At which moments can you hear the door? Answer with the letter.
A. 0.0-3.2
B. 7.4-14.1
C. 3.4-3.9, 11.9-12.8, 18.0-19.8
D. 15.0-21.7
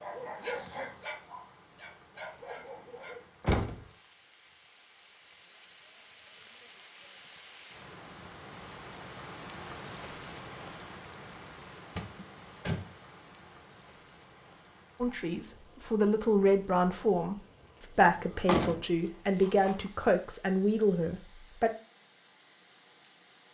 C.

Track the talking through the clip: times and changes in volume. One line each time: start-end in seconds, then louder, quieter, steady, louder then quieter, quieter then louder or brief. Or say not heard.
15.0-21.7 steady.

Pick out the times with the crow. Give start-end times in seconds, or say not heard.
not heard.